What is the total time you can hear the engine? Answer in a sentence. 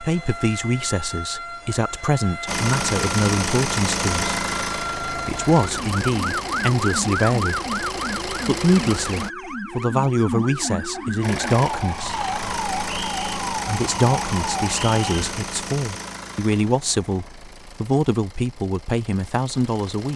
You can hear the engine for 16 seconds altogether.